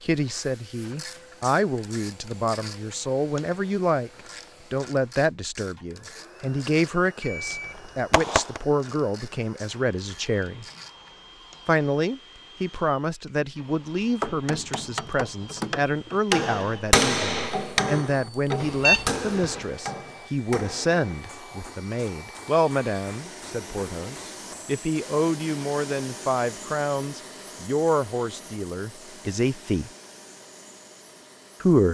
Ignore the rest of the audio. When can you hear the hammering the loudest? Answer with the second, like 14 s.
17 s.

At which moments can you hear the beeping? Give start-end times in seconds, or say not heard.
7.2-8.6, 18.6-19.6.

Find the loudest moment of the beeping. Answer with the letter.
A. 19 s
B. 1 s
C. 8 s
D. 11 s
A.